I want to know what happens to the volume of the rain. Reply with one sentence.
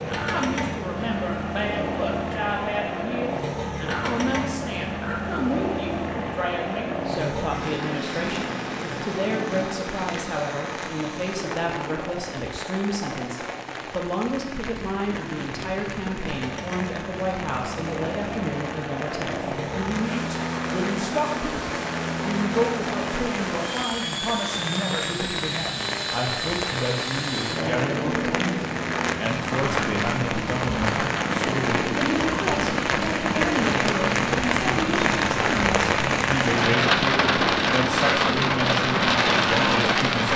The loudness of the rain goes up.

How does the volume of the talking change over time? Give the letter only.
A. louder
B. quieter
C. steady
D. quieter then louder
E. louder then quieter
C.